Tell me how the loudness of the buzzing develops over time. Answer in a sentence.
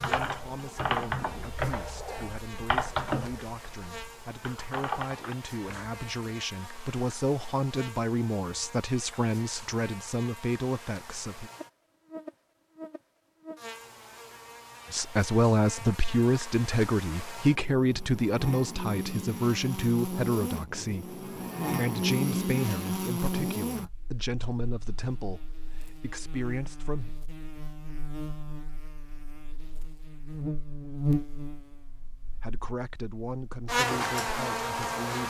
The volume of the buzzing goes up.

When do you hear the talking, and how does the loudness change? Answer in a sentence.
You can hear the talking from 0.0 to 11.5 s, getting louder; from 14.9 to 27.1 s, getting quieter; and briefly from 32.4 to 35.2 s.